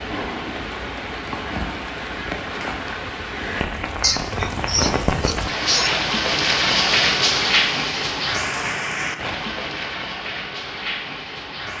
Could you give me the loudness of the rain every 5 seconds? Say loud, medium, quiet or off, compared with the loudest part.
medium, loud, medium.